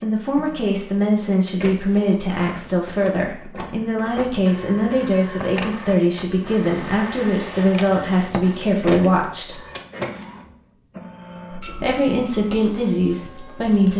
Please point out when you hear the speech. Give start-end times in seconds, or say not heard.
0.0-9.6, 11.6-13.9.